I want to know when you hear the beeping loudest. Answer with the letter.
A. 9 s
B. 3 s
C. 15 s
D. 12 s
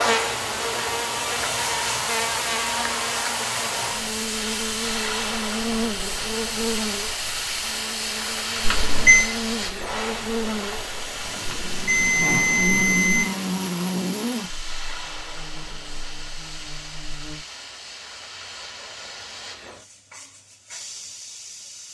A.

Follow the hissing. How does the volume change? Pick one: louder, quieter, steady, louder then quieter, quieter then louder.
quieter.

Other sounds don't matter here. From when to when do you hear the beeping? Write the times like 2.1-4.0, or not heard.
8.6-9.3, 11.4-13.2.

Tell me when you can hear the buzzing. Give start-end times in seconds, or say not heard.
0.0-17.4.